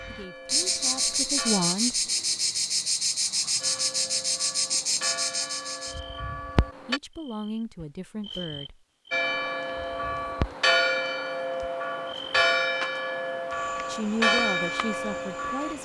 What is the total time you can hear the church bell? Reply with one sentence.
You can hear the church bell for 12 seconds altogether.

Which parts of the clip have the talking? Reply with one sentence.
The talking can be heard from 0.0 to 2.1 s, from 6.8 to 8.8 s and from 13.8 to 15.8 s.